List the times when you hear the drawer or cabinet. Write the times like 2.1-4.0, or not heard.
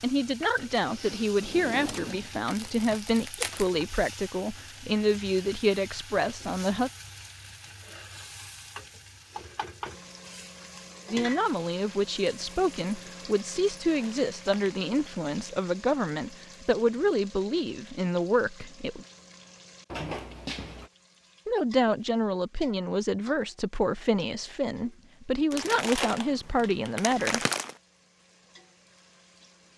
1.4-3.0, 19.9-20.9.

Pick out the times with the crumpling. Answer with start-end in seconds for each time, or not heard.
2.5-3.7, 13.8-14.8, 25.5-27.8.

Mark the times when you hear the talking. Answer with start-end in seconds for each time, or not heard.
0.0-6.9, 11.1-19.1, 21.4-27.4.